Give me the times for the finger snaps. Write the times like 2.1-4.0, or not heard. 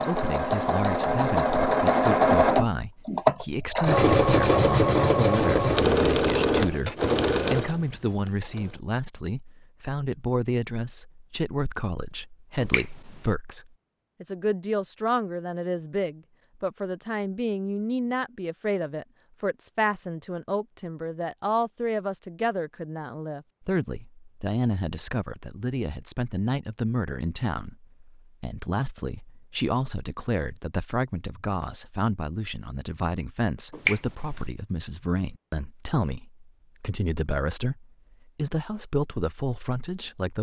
12.6-13.3, 33.7-34.5.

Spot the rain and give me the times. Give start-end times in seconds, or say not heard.
not heard.